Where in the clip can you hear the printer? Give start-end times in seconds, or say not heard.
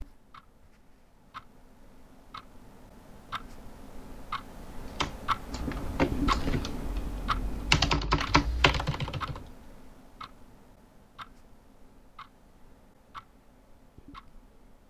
not heard.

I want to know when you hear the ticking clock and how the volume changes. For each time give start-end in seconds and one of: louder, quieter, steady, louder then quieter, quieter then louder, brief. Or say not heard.
0.0-14.8 louder then quieter.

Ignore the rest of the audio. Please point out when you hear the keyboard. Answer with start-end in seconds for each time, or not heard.
5.0-9.4.